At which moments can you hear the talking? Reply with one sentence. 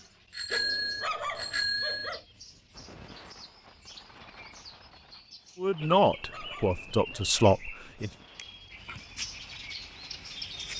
You can hear the talking from 5.5 to 8.1 s.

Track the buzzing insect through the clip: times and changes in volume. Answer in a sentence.
You can't hear the buzzing insect here.